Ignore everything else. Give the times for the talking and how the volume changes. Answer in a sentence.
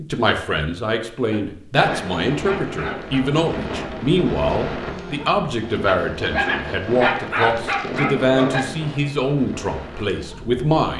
The talking can be heard from 0.0 to 10.9 s, at a steady volume.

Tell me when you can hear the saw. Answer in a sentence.
You can't hear the saw here.